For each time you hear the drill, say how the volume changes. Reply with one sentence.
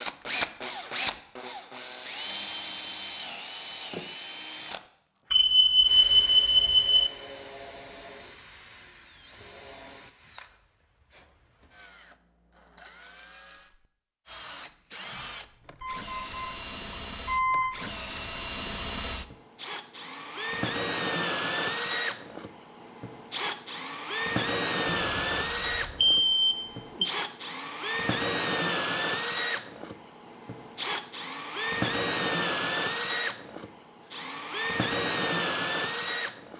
You can hear the drill from 0.0 to 36.5 s, getting quieter then louder.